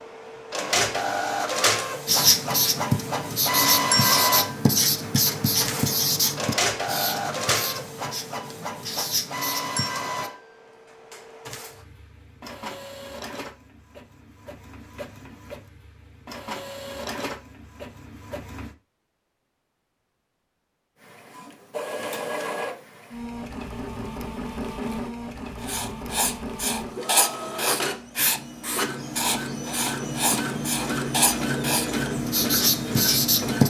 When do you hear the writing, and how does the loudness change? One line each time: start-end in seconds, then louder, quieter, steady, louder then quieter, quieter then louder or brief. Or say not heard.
2.0-10.3 quieter
25.6-33.6 steady.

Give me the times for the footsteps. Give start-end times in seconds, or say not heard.
not heard.